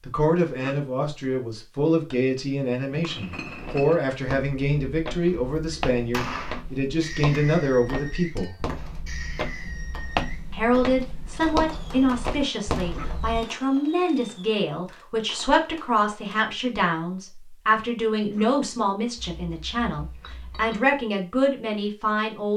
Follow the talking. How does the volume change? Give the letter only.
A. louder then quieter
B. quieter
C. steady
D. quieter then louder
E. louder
C.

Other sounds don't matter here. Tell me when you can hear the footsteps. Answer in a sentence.
The footsteps can be heard from 3.5 to 13.4 s.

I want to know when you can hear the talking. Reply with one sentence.
You can hear the talking from 0.1 to 8.6 s and from 10.5 to 22.5 s.